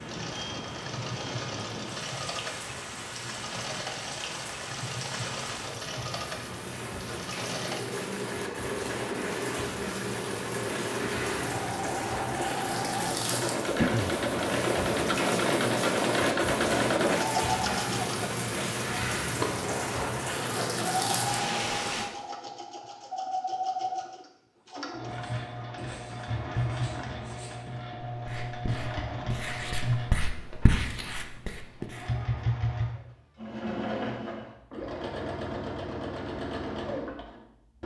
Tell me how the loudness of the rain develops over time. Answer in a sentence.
The loudness of the rain goes up.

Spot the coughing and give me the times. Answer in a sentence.
You can hear the coughing from 13.8 to 14.2 s.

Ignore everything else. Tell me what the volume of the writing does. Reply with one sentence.
The volume of the writing goes up, then down.